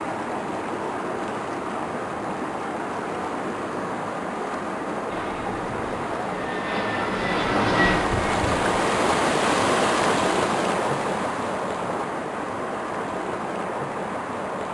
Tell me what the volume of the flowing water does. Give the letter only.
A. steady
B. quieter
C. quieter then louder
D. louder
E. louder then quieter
E.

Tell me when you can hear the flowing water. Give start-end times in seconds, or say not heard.
0.0-14.6.